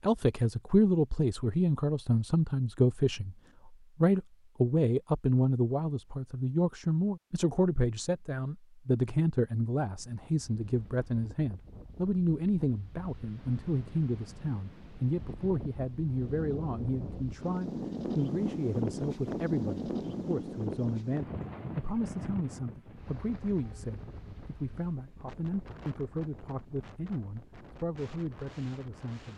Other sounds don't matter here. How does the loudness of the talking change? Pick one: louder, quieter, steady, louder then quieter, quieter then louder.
quieter.